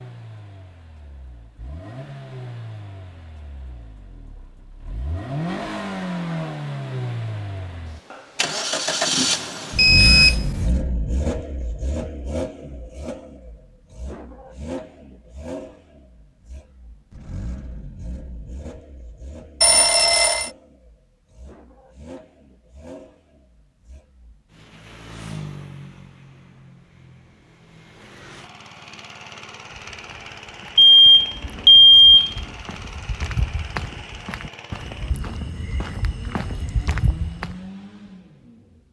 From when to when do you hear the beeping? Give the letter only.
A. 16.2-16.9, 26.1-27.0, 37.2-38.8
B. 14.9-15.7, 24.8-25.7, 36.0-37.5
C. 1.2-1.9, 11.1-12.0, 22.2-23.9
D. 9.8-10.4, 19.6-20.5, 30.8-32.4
D.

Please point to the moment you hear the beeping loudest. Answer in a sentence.
The volume of the beeping peaks at 32 seconds.